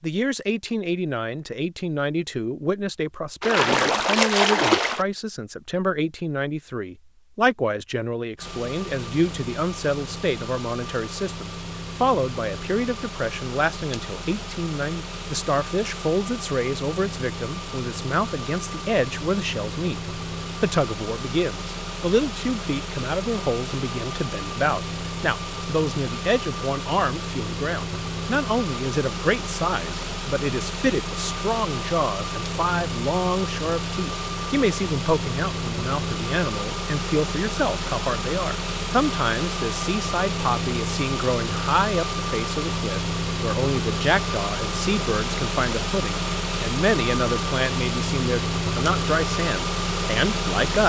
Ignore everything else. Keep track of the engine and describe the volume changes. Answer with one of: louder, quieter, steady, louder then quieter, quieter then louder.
louder.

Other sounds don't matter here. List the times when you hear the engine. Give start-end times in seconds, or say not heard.
8.3-50.8.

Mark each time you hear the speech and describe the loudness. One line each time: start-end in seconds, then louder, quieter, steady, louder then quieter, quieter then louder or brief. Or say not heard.
0.0-50.8 steady.